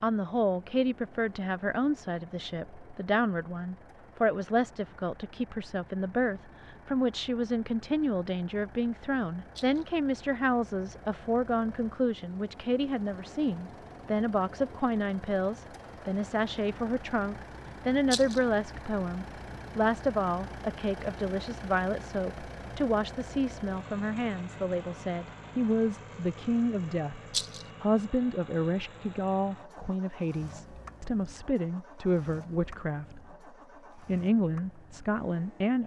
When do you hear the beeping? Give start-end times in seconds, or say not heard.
not heard.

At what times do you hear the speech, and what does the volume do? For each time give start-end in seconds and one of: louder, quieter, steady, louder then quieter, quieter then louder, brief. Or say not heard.
0.0-33.4 steady
34.0-35.8 brief.